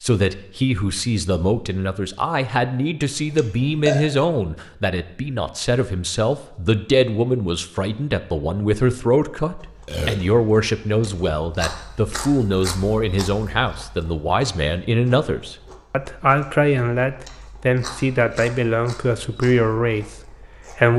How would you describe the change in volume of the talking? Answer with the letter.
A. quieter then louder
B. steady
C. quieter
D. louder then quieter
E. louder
B.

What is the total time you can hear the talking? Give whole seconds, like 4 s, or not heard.
21 s.